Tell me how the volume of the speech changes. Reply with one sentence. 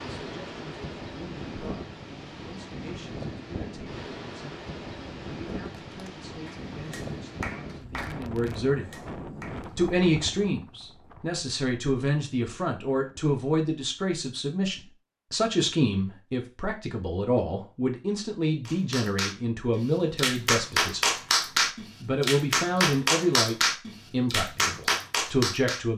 The volume of the speech goes up.